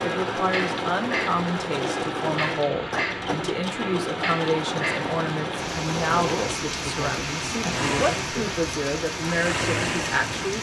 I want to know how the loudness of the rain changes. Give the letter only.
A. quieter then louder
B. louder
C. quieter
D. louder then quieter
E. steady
E.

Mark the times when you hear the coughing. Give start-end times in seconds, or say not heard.
6.1-8.4.